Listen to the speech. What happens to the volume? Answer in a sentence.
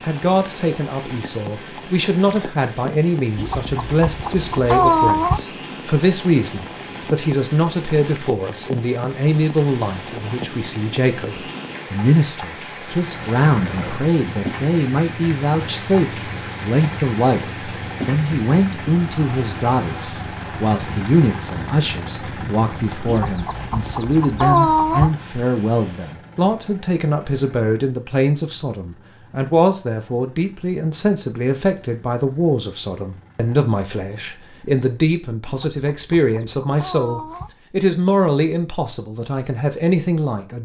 The loudness of the speech stays about the same.